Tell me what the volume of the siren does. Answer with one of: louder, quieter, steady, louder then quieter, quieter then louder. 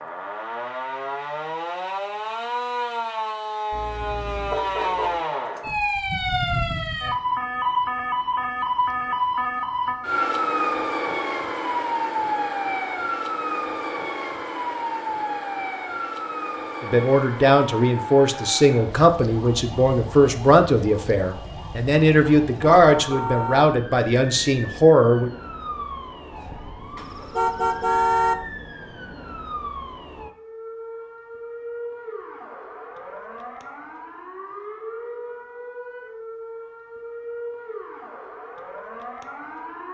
quieter.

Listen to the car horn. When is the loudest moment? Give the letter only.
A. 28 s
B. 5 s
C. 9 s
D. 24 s
A.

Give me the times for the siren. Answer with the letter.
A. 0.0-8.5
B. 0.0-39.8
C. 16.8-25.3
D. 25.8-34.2
B.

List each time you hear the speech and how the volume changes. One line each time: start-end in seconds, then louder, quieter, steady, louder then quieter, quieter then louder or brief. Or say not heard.
16.8-25.3 steady.